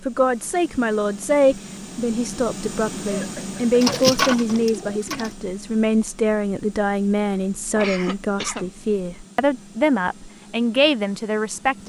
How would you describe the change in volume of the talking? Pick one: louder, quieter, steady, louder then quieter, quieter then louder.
steady.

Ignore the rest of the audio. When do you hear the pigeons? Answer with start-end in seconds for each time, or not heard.
3.8-5.3.